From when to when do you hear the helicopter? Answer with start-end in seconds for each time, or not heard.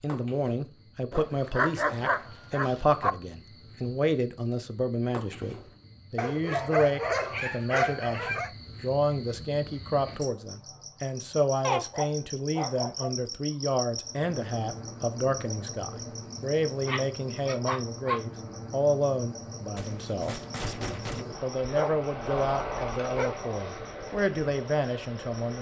14.0-25.5.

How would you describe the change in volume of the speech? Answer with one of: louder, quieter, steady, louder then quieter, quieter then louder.
steady.